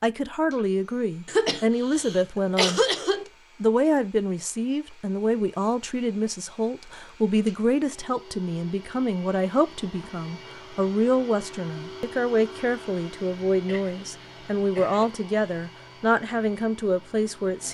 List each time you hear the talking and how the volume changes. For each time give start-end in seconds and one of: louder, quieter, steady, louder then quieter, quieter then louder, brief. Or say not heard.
0.0-2.8 brief
3.6-17.6 steady.